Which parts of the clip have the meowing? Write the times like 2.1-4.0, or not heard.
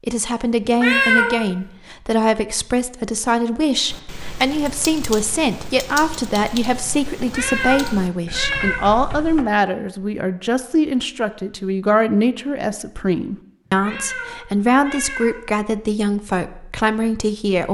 0.7-1.4, 7.2-8.8, 13.7-15.3.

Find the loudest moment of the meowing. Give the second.
1 s.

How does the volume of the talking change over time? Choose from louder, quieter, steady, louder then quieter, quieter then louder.
steady.